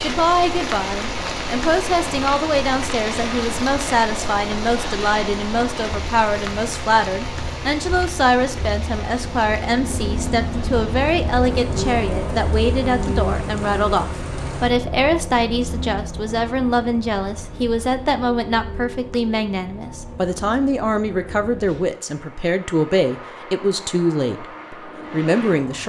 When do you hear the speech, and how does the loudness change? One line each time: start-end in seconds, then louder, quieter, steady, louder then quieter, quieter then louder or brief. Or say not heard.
0.0-25.8 steady.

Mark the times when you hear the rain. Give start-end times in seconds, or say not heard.
0.0-14.7.